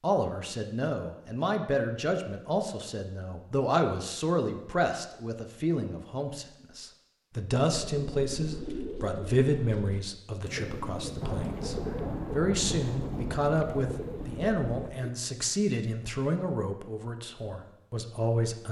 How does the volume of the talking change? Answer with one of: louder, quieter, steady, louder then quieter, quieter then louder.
steady.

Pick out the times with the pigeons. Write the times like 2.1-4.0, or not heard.
7.7-15.2.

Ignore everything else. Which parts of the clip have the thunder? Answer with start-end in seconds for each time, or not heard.
11.2-15.1.